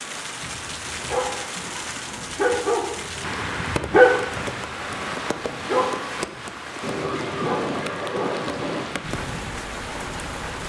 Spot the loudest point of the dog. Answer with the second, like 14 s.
4 s.